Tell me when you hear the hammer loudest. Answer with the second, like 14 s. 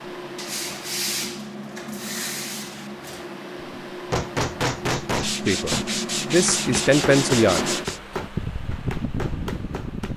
5 s.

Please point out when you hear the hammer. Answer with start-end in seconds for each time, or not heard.
3.7-10.1.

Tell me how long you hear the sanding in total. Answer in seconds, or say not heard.
6 s.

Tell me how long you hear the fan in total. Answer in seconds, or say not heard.
10 s.